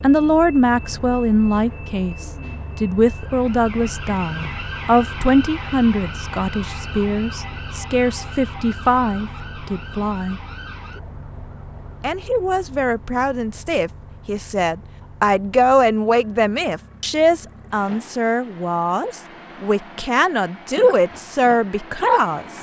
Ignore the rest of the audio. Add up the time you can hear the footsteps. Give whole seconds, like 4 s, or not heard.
not heard.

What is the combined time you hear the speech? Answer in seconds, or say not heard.
21 s.